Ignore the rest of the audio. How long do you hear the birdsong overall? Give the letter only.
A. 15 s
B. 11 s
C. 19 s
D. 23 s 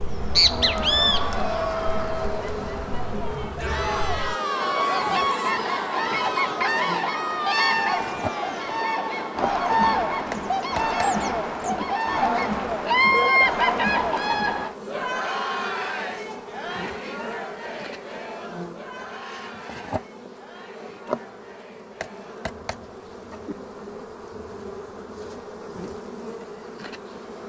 A.